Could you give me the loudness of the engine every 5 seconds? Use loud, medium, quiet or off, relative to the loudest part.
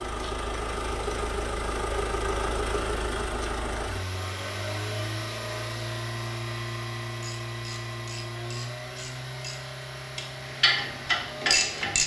loud, loud, medium.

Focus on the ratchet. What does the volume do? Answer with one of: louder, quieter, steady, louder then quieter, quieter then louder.
louder.